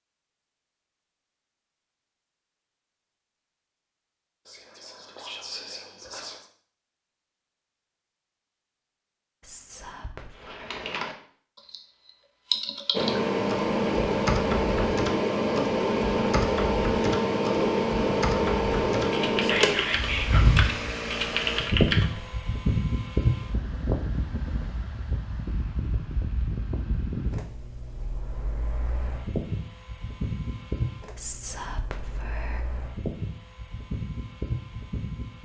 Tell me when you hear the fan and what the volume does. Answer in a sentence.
You can hear the fan from 12.9 to 35.4 s, getting quieter.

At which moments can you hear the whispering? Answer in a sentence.
The whispering can be heard from 4.5 to 6.5 s, from 9.4 to 10.9 s, from 19.4 to 20.5 s and from 31.1 to 32.6 s.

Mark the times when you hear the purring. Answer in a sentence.
You can't hear the purring here.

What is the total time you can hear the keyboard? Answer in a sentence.
You can hear the keyboard for 12 seconds altogether.